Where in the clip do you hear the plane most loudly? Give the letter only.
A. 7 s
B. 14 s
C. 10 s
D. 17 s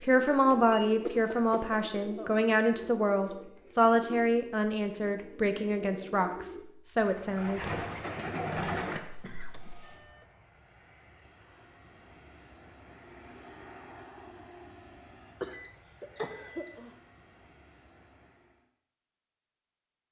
B.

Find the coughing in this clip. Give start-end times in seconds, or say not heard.
1.0-2.3, 8.6-9.8, 15.4-16.9.